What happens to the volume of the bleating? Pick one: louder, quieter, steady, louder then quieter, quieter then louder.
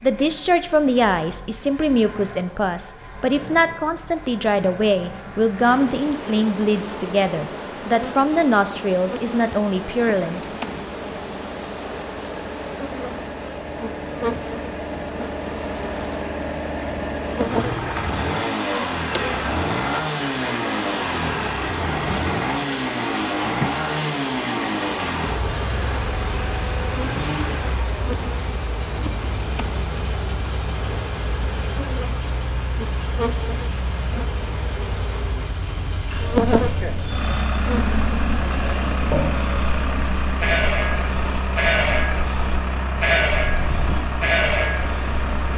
louder.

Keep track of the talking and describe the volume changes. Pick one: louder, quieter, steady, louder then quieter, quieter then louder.
steady.